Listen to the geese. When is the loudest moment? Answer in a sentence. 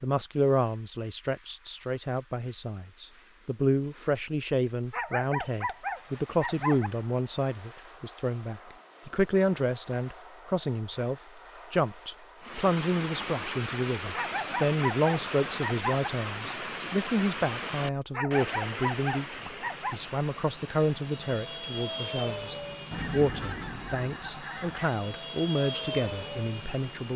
The loudest moment of the geese is at 23 seconds.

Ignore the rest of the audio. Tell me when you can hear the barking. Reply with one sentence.
You can hear the barking from 4.9 to 6.9 s, from 14.1 to 16.1 s and from 18.1 to 19.9 s.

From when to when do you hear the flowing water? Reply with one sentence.
The flowing water can be heard from 12.4 to 27.1 s.